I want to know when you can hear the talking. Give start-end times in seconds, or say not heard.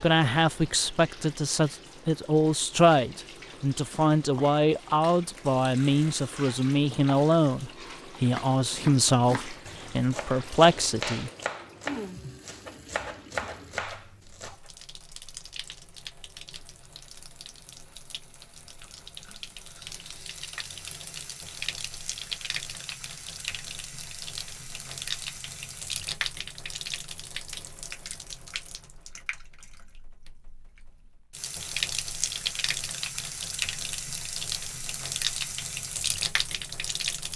0.0-11.3.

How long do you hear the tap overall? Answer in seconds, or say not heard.
37 s.